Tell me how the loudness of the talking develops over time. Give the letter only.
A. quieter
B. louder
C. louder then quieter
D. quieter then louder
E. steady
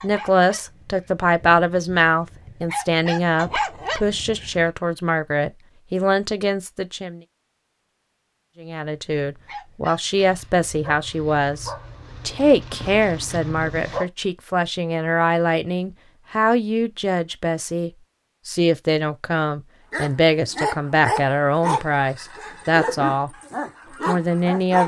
E.